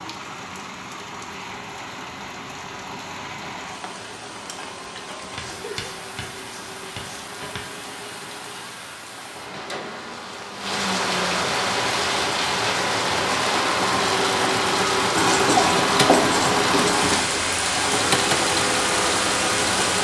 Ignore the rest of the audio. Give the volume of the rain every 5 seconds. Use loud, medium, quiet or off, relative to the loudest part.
quiet, quiet, loud, loud.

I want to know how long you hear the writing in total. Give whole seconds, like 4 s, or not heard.
4 s.